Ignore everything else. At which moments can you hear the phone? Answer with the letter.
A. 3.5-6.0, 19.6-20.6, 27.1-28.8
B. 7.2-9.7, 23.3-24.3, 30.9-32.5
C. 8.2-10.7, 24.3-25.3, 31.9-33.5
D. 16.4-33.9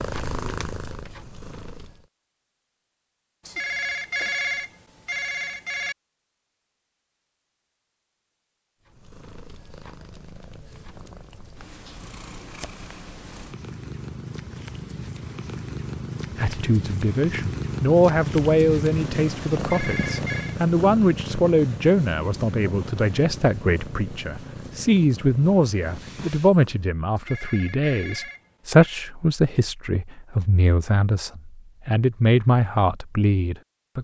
A.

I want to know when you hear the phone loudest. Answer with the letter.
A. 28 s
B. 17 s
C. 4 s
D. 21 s
C.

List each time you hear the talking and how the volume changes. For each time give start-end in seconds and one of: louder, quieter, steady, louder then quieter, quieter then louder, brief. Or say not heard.
16.4-33.9 steady.